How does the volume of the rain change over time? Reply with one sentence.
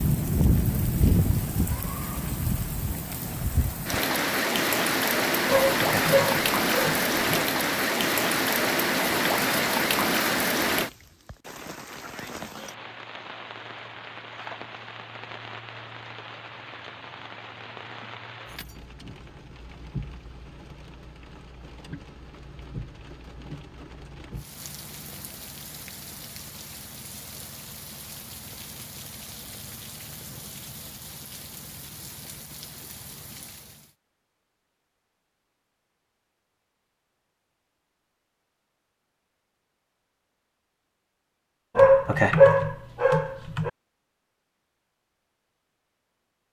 The loudness of the rain goes down.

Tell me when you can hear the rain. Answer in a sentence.
You can hear the rain from 0.0 to 34.0 s.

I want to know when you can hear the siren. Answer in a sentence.
The siren can't be heard in this clip.